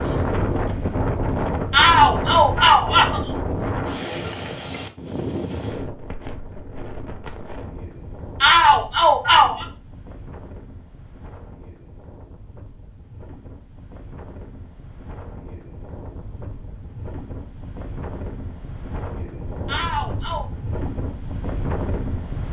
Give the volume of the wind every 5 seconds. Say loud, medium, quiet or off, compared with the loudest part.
loud, medium, quiet, medium, medium.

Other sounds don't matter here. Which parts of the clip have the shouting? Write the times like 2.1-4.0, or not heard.
1.7-3.2, 8.4-9.7, 19.6-20.5.